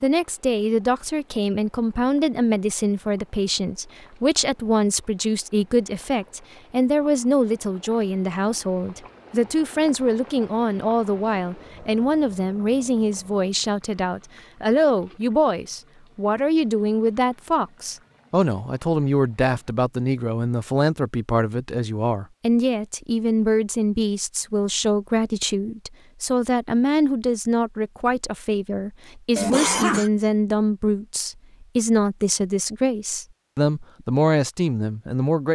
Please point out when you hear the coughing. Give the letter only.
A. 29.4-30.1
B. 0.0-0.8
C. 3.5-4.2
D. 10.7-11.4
A.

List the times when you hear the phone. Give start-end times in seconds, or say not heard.
not heard.